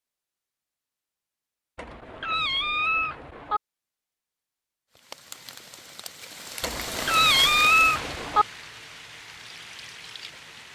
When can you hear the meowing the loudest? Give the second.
8 s.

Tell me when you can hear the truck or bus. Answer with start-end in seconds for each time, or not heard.
not heard.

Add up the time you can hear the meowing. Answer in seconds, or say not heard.
4 s.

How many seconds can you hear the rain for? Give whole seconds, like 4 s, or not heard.
6 s.